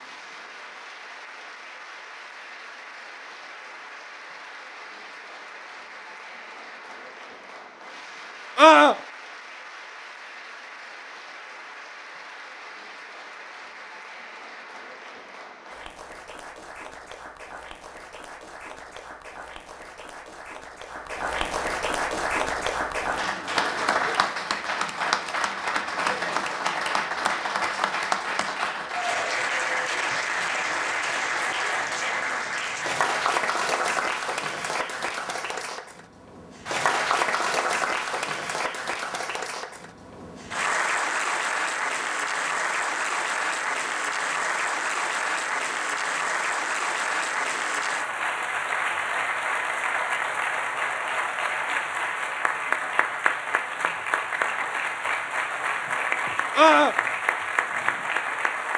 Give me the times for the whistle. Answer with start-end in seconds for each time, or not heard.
not heard.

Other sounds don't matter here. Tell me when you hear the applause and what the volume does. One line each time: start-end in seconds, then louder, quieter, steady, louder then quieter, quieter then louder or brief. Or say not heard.
0.0-58.7 louder.